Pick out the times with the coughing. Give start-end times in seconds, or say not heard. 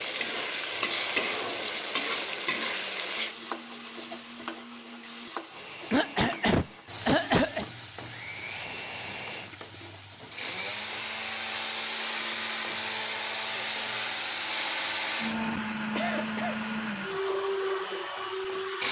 5.9-7.7, 15.9-16.6.